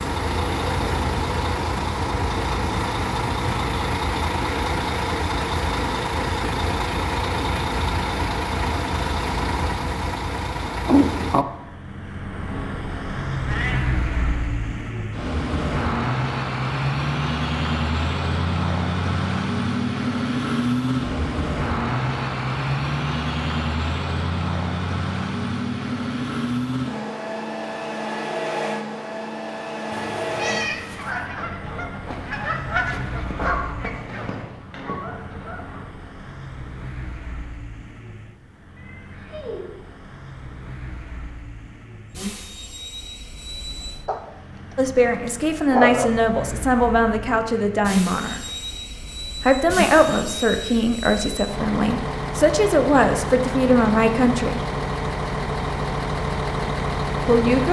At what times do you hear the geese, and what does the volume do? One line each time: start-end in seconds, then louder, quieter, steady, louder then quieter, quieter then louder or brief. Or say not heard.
30.8-35.9 louder then quieter.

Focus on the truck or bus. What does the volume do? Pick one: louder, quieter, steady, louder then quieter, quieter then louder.
quieter then louder.